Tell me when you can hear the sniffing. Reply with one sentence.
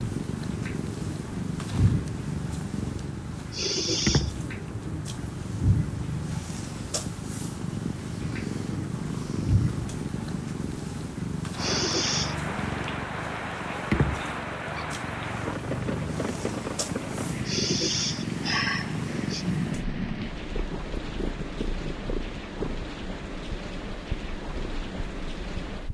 The sniffing can be heard from 3.5 to 4.3 s, from 11.6 to 12.3 s and from 17.4 to 19.4 s.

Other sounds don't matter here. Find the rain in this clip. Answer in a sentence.
You can hear the rain from 0.0 to 25.9 s.